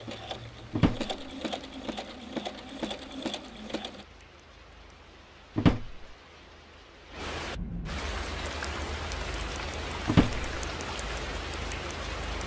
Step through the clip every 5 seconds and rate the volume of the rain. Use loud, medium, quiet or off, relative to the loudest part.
quiet, loud, loud.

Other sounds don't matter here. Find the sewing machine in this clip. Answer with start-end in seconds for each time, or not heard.
0.0-4.0.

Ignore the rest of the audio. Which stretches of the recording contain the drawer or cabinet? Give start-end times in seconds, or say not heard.
0.7-1.1, 5.5-6.0, 10.1-10.5.